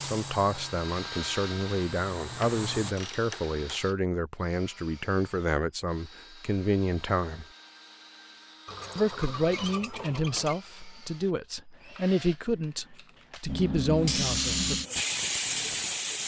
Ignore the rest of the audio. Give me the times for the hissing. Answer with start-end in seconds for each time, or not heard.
0.0-3.0, 13.4-16.2.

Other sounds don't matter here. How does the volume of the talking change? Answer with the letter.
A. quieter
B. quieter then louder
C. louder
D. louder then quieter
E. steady
E.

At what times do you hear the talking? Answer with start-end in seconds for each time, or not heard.
0.0-7.5, 8.9-14.8.